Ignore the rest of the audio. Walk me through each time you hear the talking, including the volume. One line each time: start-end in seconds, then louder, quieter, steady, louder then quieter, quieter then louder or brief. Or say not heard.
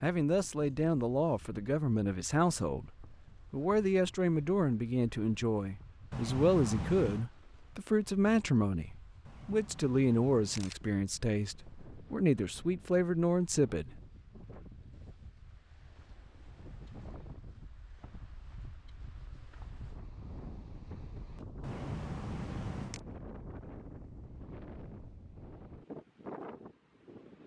0.0-13.9 steady.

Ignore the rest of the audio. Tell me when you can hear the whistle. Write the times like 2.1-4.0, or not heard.
not heard.